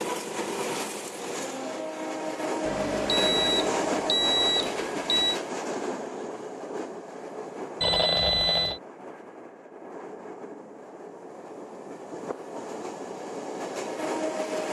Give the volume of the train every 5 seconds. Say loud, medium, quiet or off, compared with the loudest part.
loud, medium, medium.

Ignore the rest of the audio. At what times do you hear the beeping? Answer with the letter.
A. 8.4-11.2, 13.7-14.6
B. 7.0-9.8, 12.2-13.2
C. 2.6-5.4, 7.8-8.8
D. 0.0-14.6
C.